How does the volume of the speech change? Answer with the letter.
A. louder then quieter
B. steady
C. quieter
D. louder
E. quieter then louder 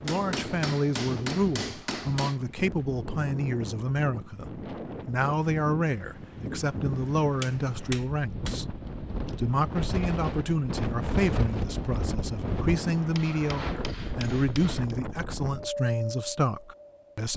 B.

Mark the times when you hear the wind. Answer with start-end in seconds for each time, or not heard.
0.0-17.3.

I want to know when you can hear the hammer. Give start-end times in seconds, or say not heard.
0.1-2.4, 7.4-8.6, 13.2-14.9.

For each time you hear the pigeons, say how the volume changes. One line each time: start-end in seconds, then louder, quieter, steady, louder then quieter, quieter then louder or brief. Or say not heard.
not heard.